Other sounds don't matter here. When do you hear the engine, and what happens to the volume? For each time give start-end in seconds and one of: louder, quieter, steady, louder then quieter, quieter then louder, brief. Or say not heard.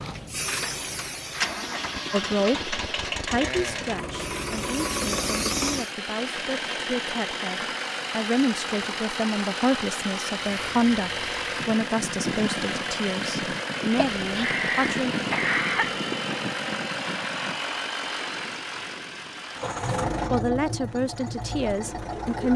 0.0-22.5 steady.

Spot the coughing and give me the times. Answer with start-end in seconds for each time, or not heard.
13.9-15.9.